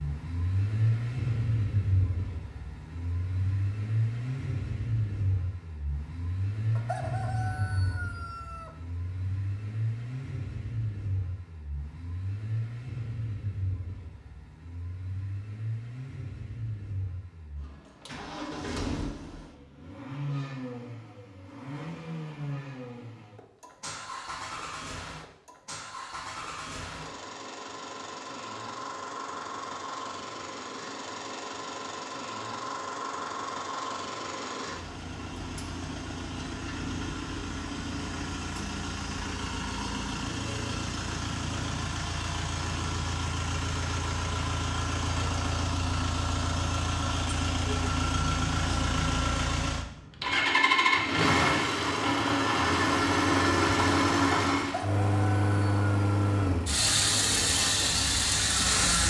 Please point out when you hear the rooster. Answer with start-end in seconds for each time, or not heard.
6.8-8.7, 54.6-56.4.